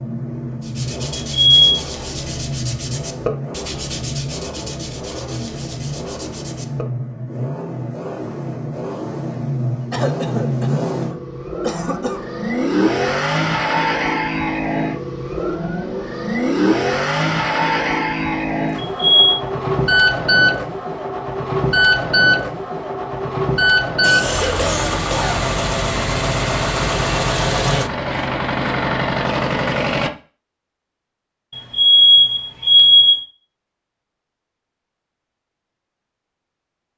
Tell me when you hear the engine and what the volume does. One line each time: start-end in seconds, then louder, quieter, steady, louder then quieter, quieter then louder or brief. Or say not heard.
0.0-30.1 louder.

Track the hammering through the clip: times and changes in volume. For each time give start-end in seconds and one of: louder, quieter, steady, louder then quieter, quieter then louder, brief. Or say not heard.
not heard.